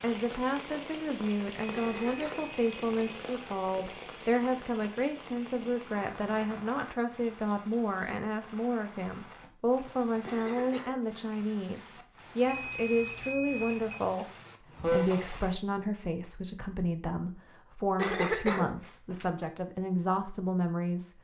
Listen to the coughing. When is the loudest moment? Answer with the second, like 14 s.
18 s.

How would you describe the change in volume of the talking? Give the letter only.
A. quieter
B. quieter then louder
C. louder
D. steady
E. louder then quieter
D.